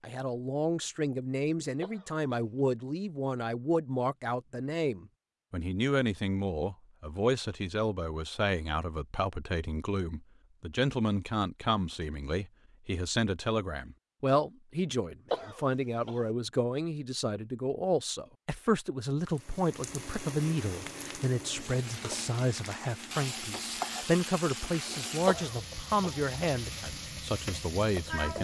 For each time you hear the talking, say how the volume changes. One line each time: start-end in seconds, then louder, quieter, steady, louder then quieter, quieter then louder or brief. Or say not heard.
0.0-28.3 steady.